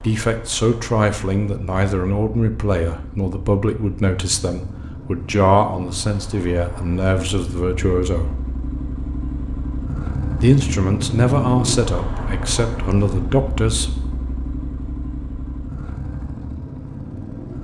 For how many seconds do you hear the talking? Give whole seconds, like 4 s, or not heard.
12 s.